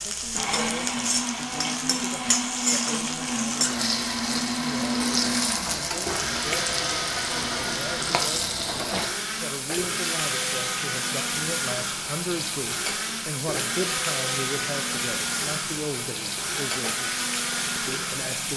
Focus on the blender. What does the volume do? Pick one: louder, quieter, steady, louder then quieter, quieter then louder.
steady.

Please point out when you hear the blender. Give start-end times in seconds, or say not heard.
0.2-18.2.